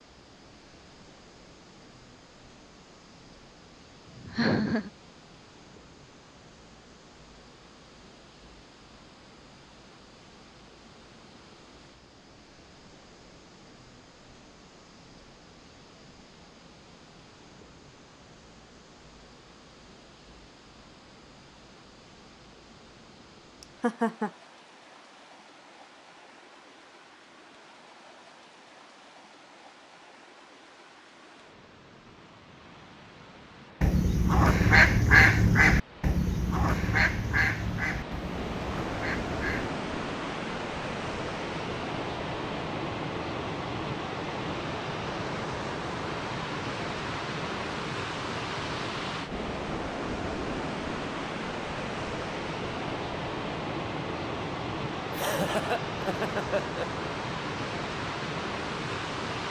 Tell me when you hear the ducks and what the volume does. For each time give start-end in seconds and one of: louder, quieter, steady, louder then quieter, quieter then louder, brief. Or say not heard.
33.8-39.7 quieter.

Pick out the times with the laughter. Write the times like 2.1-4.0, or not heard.
4.2-4.9, 23.6-24.3, 55.1-57.0.